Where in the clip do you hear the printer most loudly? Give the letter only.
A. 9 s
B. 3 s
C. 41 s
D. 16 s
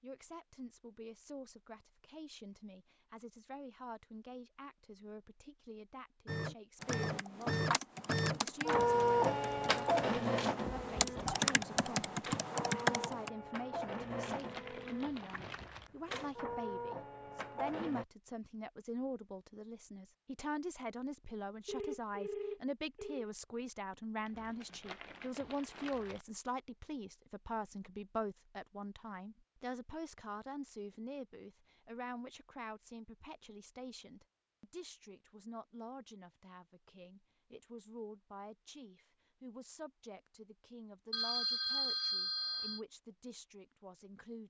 A.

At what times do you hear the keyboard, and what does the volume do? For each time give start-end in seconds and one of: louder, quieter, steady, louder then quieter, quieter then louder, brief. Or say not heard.
6.8-13.3 quieter then louder.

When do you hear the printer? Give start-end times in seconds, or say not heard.
6.2-18.1.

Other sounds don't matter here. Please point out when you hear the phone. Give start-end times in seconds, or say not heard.
10.7-11.4, 21.6-23.3, 41.1-42.8.